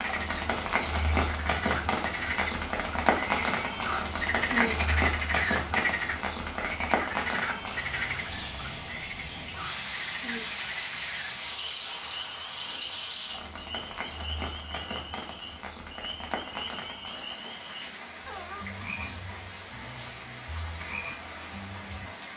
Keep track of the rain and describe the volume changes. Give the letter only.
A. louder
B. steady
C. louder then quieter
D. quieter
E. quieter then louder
D.